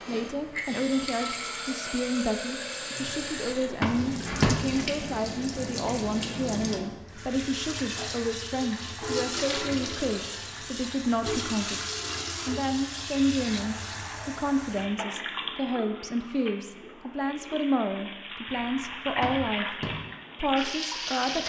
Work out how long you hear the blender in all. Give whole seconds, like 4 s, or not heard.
not heard.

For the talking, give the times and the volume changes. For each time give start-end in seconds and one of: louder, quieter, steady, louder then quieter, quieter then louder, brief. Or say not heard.
0.1-11.8 steady
12.4-19.8 steady
20.4-21.4 brief.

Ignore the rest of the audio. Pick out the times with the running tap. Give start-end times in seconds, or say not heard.
0.0-21.4.